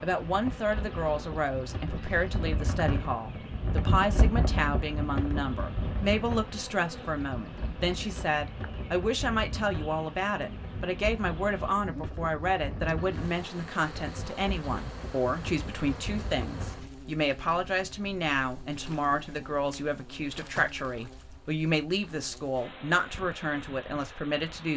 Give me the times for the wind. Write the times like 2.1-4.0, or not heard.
0.2-16.9.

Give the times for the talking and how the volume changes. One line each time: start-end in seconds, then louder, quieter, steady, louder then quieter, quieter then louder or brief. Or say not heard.
0.0-24.7 steady.